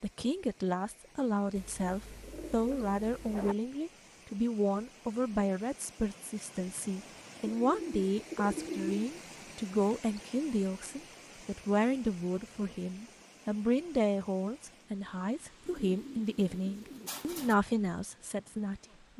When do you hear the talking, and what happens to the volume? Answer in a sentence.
The talking can be heard from 0.0 to 19.1 s, at a steady volume.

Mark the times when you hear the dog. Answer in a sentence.
You can't hear the dog here.